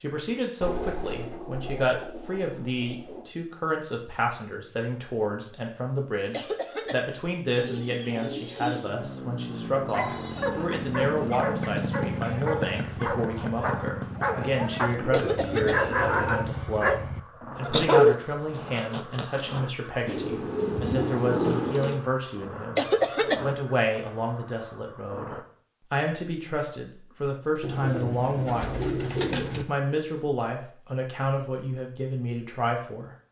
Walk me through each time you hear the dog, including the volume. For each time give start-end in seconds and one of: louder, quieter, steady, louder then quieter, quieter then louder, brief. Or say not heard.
9.9-19.6 louder.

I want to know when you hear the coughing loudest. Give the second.
23 s.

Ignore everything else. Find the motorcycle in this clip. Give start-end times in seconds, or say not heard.
8.8-25.4.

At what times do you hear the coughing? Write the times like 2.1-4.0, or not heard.
6.3-7.0, 15.1-15.9, 22.8-23.6.